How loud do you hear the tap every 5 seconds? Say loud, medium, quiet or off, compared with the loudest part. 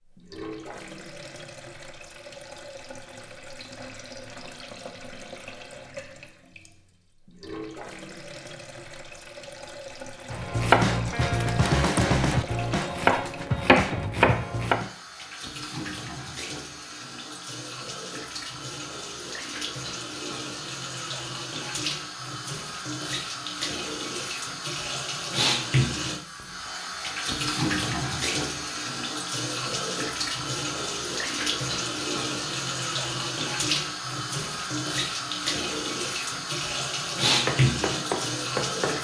quiet, quiet, quiet, medium, medium, loud, loud, loud.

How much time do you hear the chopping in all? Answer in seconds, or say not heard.
6 s.